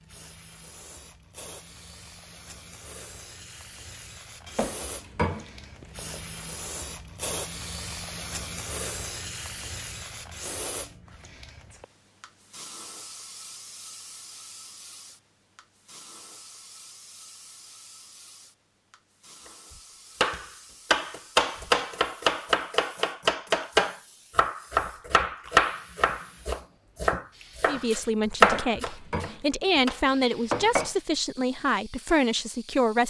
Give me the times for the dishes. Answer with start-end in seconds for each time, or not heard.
4.5-6.5, 28.4-30.9.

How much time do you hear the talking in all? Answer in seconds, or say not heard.
5 s.